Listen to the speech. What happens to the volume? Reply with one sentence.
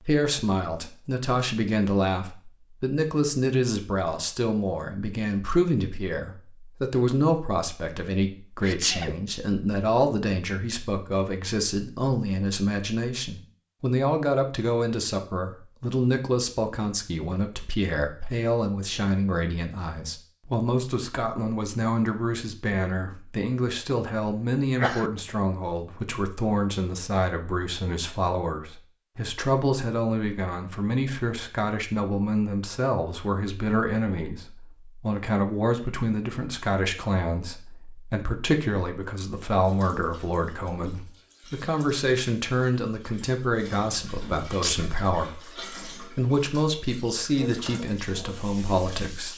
The loudness of the speech stays about the same.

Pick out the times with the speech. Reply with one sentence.
The speech can be heard from 0.0 to 49.3 s.